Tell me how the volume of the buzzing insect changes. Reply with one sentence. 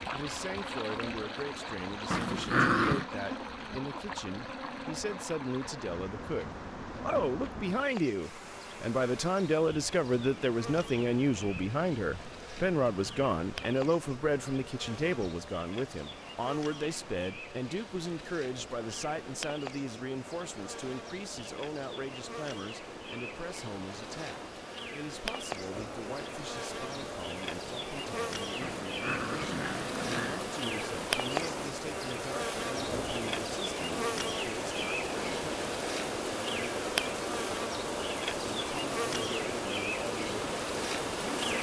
The loudness of the buzzing insect goes up.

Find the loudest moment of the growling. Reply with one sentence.
The loudest moment of the growling is at 3 seconds.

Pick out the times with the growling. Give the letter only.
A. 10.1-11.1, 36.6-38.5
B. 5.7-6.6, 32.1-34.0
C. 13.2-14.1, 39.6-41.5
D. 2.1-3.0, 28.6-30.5
D.